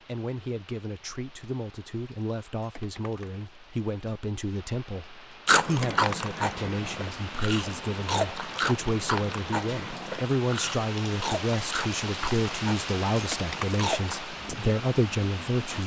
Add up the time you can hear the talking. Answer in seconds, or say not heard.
16 s.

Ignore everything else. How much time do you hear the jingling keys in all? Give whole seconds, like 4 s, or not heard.
2 s.